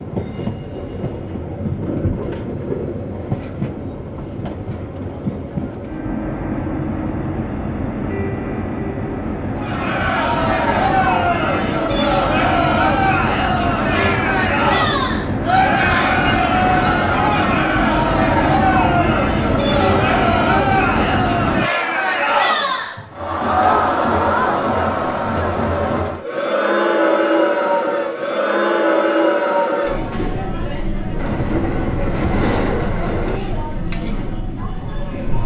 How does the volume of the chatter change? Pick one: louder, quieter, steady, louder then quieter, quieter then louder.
quieter.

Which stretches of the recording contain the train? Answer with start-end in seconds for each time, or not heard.
0.0-21.7, 31.1-33.4.